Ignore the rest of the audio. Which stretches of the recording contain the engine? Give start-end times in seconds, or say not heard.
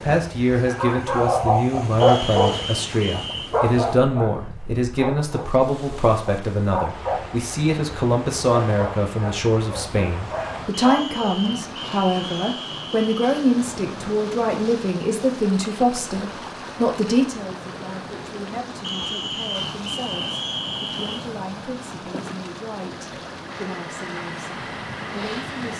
23.4-25.7.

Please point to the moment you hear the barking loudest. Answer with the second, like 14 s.
2 s.